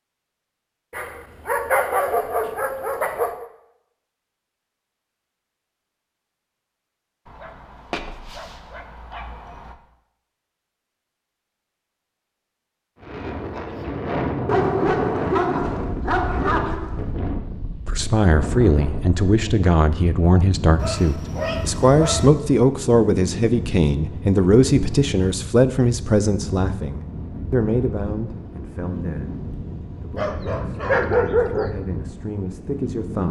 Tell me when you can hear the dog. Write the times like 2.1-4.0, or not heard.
0.9-3.5, 7.3-9.8, 14.4-17.0, 20.8-22.2, 30.1-31.7.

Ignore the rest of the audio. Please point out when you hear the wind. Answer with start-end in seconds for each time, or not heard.
13.0-33.2.